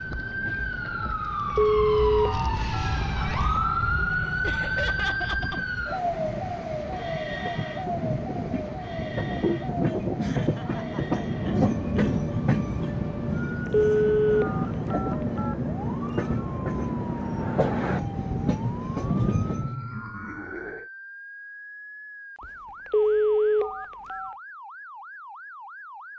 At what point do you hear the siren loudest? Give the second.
4 s.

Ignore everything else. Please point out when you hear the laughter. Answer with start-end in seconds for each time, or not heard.
4.4-5.7, 10.2-12.2, 19.4-20.9.